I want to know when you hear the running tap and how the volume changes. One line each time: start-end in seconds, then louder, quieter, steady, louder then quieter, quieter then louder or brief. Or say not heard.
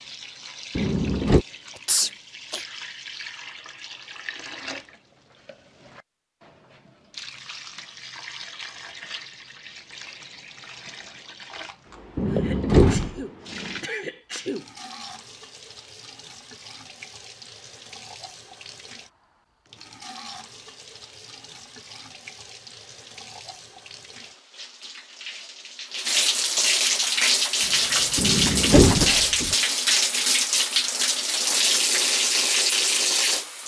0.0-33.6 louder.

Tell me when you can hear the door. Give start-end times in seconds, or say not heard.
0.8-1.4, 12.2-13.2, 28.1-29.6.